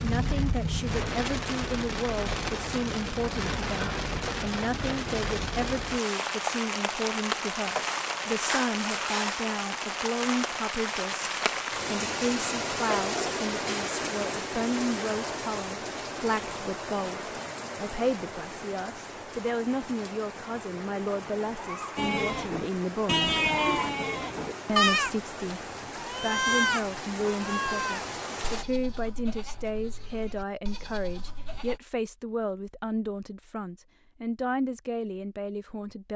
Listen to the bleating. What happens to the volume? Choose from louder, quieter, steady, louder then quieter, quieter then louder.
quieter.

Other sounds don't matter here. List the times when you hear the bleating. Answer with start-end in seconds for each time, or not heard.
21.9-25.1, 25.9-31.8.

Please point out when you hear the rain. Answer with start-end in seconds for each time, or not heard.
0.0-28.6.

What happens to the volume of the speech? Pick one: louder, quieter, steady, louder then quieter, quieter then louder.
steady.